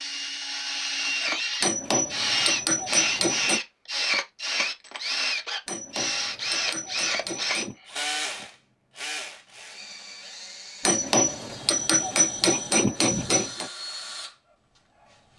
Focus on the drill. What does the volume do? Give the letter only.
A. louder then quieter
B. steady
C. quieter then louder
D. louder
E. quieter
E.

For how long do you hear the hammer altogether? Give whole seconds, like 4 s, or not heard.
7 s.